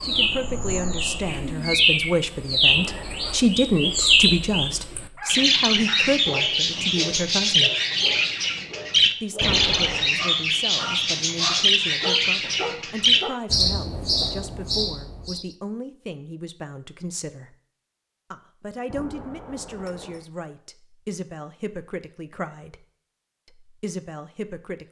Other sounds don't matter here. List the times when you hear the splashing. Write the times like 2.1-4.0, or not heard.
not heard.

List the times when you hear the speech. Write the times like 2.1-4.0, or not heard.
0.0-7.7, 9.2-17.6, 18.3-22.9, 23.4-24.8.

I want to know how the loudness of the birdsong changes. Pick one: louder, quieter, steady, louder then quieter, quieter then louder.
steady.